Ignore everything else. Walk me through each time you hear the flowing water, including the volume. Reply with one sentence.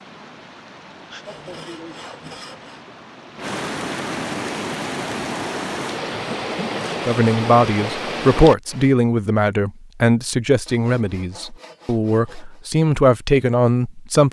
The flowing water can be heard from 0.0 to 8.9 s, getting louder.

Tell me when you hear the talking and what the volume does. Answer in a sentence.
You can hear the talking from 7.0 to 14.2 s, getting quieter then louder.